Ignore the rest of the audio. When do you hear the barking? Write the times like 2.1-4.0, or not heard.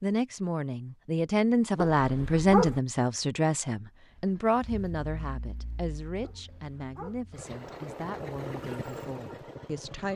1.9-2.8, 6.2-7.2.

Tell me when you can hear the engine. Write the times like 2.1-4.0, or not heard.
4.1-10.1.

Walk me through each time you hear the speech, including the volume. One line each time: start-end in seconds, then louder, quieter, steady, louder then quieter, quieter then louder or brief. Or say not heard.
0.0-10.1 quieter.